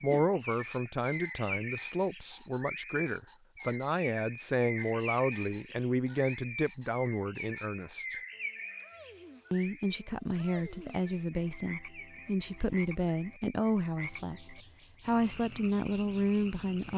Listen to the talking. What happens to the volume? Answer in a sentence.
The volume of the talking stays about the same.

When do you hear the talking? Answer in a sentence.
The talking can be heard from 0.0 to 8.2 s and from 9.5 to 16.9 s.